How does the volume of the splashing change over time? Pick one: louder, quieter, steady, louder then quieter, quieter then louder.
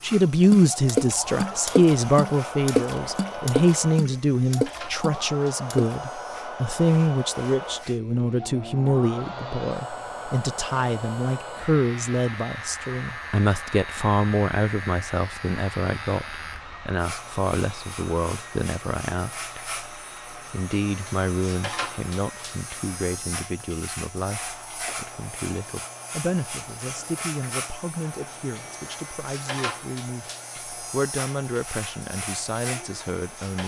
quieter then louder.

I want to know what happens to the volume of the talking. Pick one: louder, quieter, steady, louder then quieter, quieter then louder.
quieter.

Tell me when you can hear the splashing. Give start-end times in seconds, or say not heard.
0.4-6.0.